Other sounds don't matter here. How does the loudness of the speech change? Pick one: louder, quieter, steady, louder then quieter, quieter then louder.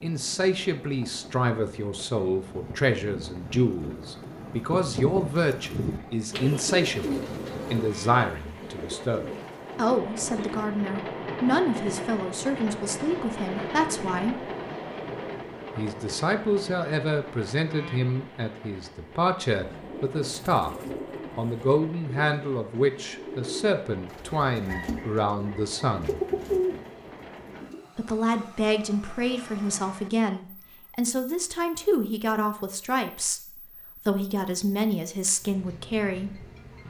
steady.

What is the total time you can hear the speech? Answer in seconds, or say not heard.
33 s.